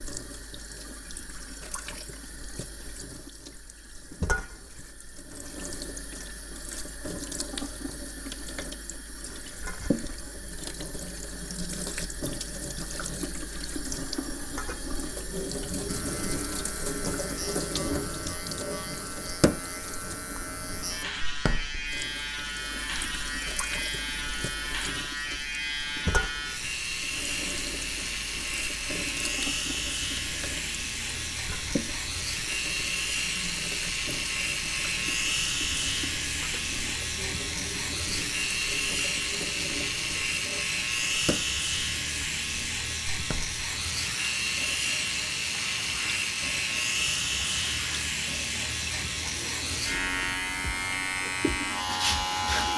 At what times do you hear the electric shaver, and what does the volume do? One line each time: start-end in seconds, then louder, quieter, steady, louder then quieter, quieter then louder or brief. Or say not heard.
15.8-52.7 louder.